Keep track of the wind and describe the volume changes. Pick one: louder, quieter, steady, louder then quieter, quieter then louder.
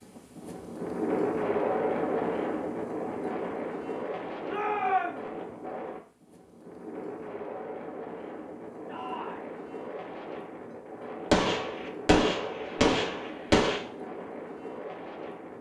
quieter.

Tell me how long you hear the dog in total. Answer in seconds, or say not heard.
not heard.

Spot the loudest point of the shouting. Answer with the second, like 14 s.
5 s.